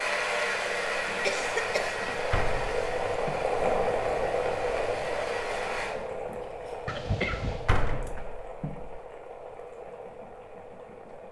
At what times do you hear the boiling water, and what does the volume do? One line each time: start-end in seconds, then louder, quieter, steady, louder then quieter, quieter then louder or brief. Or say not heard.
0.0-11.2 louder then quieter.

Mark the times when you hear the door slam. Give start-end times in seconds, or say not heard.
2.0-3.5, 7.4-9.0.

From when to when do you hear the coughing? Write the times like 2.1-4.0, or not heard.
1.2-1.9, 6.8-7.7.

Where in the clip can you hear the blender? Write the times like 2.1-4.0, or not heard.
0.0-6.0.